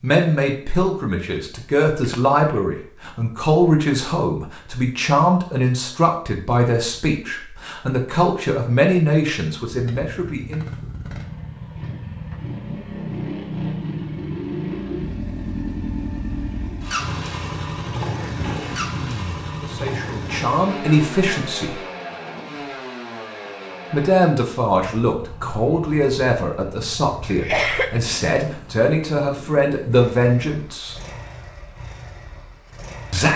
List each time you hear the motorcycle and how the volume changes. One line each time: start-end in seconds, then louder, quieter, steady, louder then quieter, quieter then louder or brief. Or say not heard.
9.7-33.3 quieter.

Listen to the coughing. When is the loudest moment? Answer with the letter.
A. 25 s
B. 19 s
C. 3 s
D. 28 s
D.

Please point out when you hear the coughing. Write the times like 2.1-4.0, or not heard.
2.0-2.6, 18.4-19.4, 27.2-28.0.